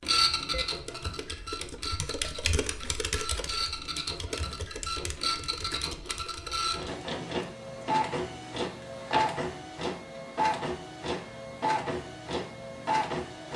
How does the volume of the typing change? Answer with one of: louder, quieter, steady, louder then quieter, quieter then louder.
louder then quieter.